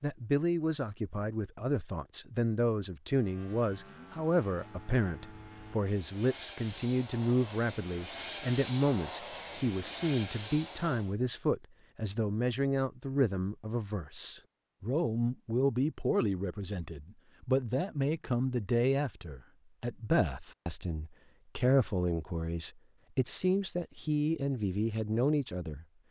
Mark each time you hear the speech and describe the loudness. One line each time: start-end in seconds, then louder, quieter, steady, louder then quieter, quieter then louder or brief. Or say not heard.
0.0-25.9 steady.